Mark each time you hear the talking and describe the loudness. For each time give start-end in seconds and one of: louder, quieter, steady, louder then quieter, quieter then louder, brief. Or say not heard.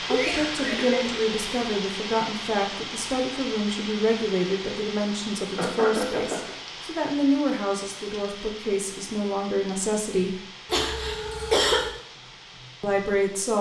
0.1-10.4 steady
12.8-13.5 brief.